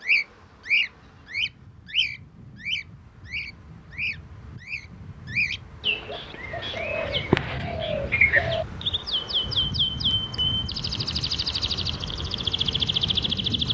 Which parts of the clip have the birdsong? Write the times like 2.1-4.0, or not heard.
0.0-13.7.